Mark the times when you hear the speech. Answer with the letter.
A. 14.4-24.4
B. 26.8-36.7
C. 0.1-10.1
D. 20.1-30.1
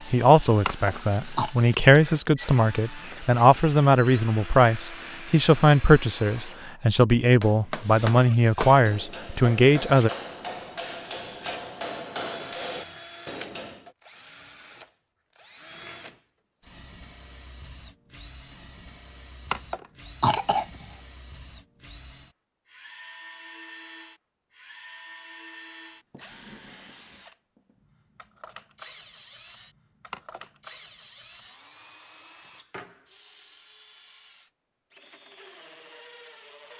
C.